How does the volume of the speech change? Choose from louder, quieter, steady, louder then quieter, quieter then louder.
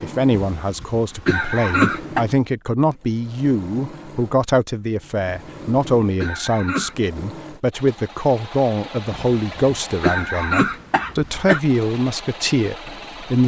steady.